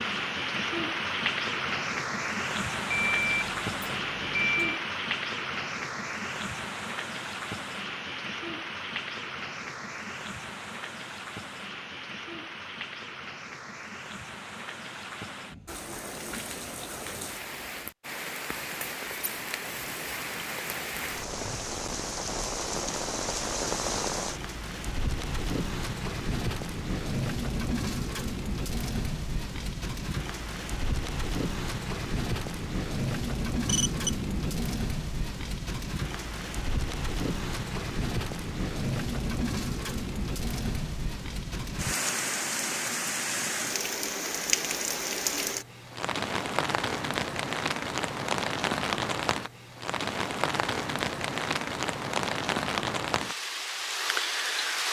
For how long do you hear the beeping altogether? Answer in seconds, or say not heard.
3 s.